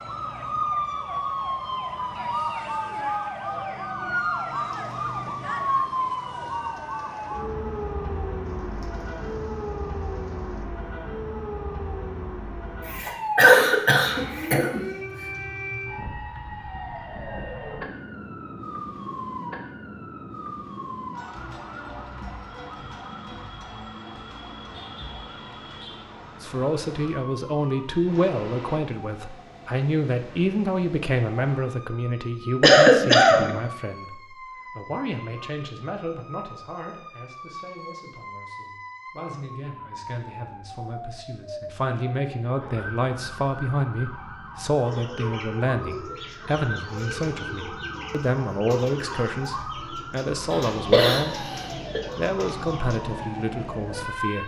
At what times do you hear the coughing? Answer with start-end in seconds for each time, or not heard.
12.8-14.8, 32.6-33.5, 50.5-51.2.